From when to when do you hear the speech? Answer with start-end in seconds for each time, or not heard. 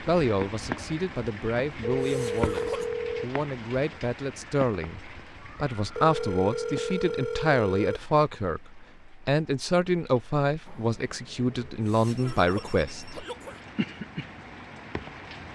0.0-13.2.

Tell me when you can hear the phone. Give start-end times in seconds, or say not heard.
2.0-3.3, 6.0-8.1, 10.7-13.2.